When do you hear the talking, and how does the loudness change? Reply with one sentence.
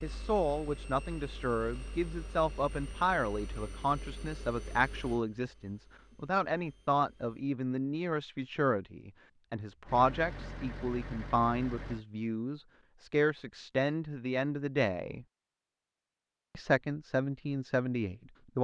The talking can be heard from 0.0 to 15.2 s, at a steady volume; and briefly from 16.6 to 18.6 s.